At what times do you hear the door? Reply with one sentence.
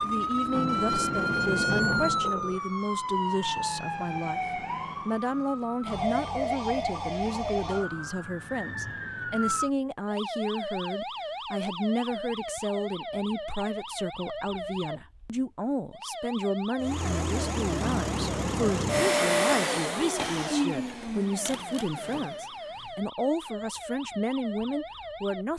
You can hear the door from 0.5 to 2.6 s and from 17.8 to 19.1 s.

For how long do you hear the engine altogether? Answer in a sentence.
You can hear the engine for 8 seconds altogether.